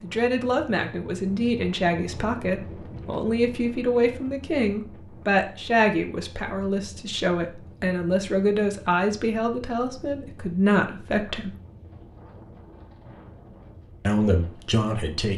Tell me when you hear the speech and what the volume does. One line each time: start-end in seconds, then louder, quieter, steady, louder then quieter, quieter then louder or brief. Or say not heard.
0.0-11.5 steady
14.0-15.3 brief.